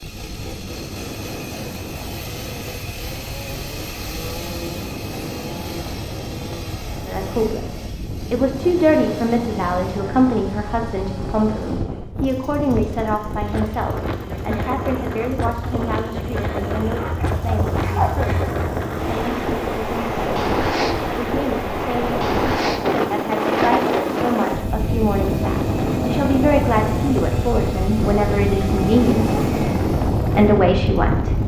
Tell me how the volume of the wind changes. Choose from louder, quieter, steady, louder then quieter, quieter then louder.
louder.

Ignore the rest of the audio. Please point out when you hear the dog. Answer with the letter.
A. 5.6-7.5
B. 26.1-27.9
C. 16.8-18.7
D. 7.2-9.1
C.